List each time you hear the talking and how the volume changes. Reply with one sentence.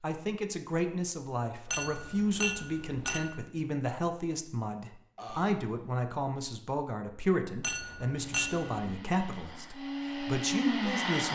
You can hear the talking from 0.0 to 11.3 s, at a steady volume.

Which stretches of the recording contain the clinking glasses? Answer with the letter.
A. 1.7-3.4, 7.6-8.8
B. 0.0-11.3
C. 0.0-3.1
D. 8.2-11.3
A.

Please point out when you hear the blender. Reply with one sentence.
You can hear the blender from 8.2 to 11.3 s.